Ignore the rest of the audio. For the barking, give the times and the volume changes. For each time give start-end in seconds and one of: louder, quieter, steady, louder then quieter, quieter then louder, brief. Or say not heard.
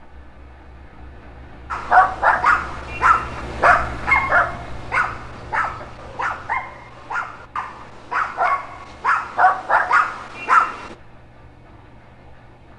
1.7-10.9 quieter then louder.